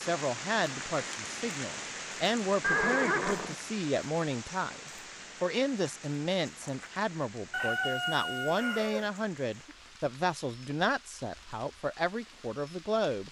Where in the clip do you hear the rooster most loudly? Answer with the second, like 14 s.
8 s.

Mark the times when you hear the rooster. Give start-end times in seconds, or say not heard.
7.5-9.1.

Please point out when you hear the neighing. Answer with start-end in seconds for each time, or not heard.
2.6-3.5.